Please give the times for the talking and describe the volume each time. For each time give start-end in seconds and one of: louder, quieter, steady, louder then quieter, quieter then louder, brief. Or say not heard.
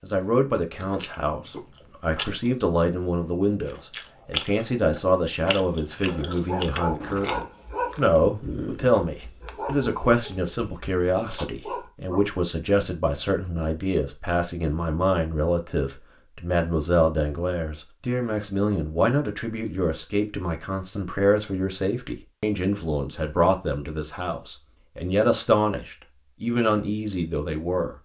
0.0-27.9 steady.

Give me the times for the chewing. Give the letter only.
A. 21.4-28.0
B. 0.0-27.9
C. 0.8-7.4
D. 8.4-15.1
C.